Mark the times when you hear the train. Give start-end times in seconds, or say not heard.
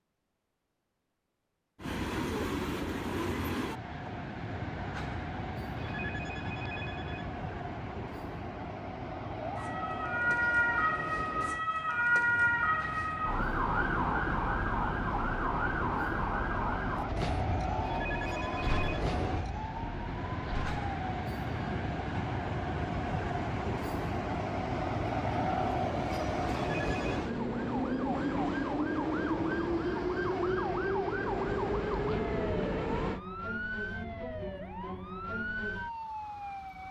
1.8-33.2.